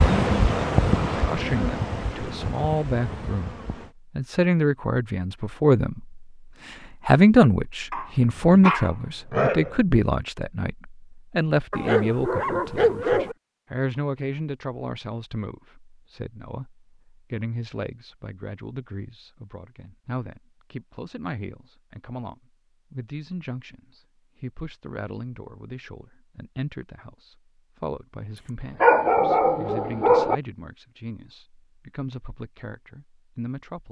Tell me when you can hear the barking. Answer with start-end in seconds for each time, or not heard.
7.9-9.8, 11.7-13.3, 28.8-30.4.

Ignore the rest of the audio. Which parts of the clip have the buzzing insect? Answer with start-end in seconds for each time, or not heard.
0.0-4.0.